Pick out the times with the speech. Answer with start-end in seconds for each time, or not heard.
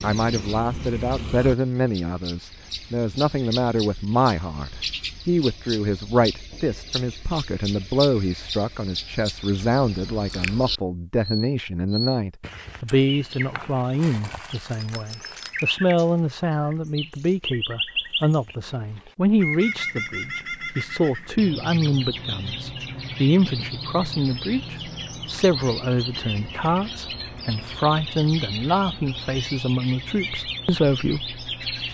0.0-31.8.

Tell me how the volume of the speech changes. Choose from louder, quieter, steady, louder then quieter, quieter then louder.
steady.